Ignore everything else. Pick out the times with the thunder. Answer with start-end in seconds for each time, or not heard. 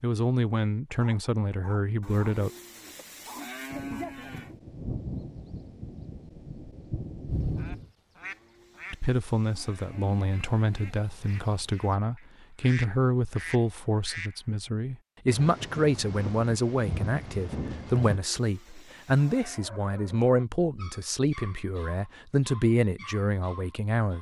3.7-7.9, 15.2-18.2.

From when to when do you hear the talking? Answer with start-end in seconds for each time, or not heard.
0.0-2.5, 8.9-24.1.